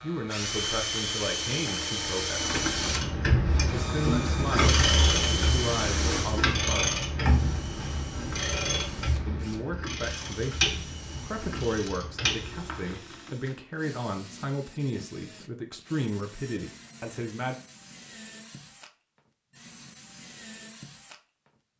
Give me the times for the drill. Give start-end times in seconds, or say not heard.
0.0-21.7.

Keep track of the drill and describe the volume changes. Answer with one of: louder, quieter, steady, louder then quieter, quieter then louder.
quieter.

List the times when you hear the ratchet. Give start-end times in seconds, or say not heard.
2.6-12.9.